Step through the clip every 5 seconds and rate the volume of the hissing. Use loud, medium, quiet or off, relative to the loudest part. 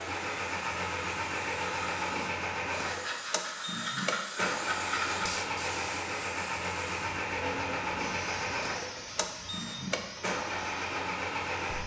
loud, loud, medium.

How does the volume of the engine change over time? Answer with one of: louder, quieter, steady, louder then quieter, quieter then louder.
steady.